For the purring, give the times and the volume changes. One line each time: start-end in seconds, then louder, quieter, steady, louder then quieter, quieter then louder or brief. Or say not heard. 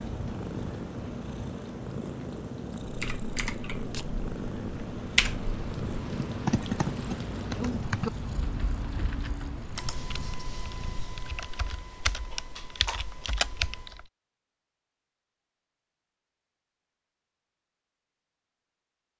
0.0-11.3 quieter.